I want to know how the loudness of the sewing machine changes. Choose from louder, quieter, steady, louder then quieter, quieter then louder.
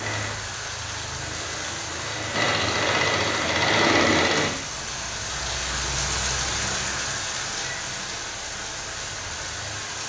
louder.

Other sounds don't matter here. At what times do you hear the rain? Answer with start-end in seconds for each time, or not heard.
0.0-10.0.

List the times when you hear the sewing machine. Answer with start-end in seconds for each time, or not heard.
0.0-4.5.